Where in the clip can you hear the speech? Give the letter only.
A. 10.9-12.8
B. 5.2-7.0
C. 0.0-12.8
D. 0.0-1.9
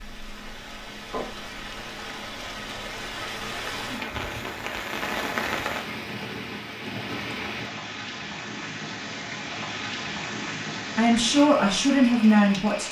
A.